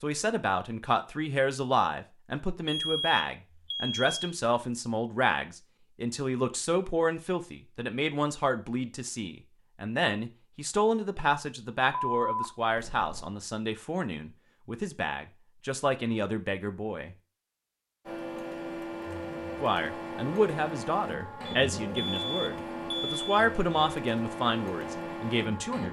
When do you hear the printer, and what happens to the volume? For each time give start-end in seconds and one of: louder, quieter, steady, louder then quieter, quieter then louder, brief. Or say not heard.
18.1-25.8 steady.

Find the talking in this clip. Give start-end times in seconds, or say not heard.
0.0-17.1, 19.6-25.8.